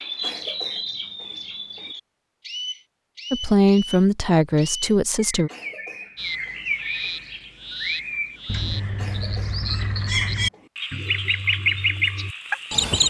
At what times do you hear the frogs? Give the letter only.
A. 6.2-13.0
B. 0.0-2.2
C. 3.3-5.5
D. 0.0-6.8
A.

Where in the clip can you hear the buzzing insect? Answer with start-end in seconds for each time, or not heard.
not heard.